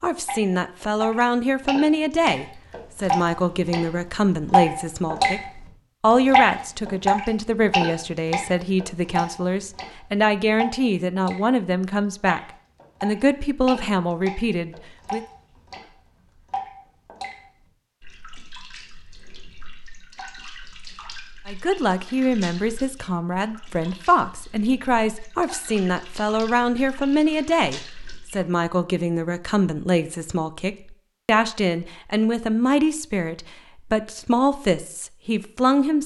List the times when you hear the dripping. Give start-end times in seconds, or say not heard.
0.2-5.3, 6.3-11.4, 12.2-17.4, 18.0-28.4.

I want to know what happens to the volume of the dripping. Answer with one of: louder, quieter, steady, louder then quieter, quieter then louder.
quieter.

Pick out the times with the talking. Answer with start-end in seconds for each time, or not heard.
0.0-5.4, 6.0-15.2, 21.4-36.0.